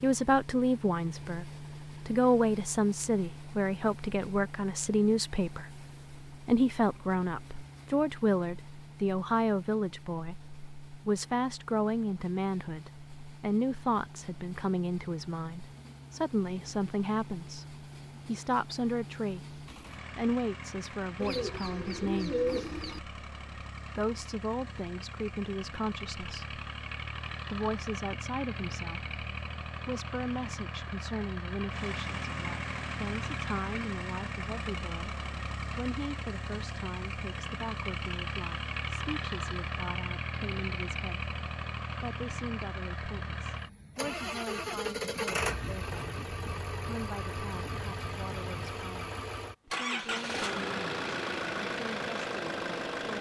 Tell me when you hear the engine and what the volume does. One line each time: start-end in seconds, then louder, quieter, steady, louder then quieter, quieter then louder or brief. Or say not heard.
0.0-53.1 louder.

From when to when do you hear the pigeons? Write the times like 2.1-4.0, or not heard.
21.2-23.0.